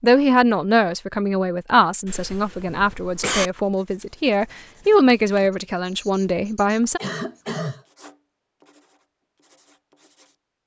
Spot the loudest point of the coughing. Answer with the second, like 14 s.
3 s.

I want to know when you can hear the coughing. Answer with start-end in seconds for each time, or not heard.
2.0-3.5, 7.0-7.8.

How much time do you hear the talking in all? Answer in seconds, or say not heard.
7 s.